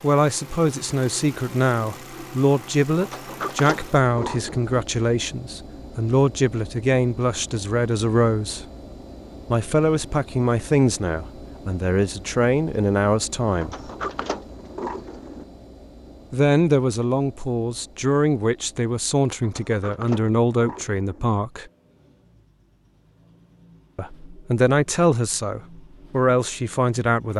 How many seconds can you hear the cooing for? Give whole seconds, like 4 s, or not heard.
not heard.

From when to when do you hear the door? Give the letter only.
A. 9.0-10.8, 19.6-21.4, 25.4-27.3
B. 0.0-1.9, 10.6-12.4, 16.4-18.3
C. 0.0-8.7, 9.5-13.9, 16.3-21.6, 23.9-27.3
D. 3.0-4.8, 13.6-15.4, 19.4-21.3
D.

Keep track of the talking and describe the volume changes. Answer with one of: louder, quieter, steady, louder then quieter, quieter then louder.
steady.